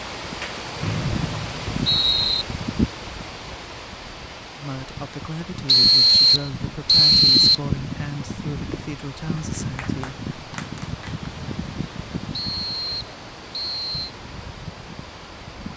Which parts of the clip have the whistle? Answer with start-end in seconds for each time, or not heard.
0.8-2.5, 5.7-7.6, 12.3-14.1.